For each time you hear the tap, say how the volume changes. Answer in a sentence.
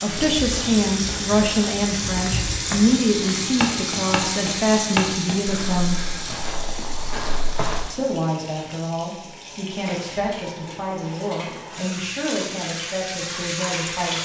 The tap can be heard from 0.0 to 14.2 s, getting quieter then louder.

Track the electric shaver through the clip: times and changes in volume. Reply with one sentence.
The electric shaver can't be heard in this clip.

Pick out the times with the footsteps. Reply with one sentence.
You can hear the footsteps from 0.1 to 7.8 s.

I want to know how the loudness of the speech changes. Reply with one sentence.
The loudness of the speech goes down.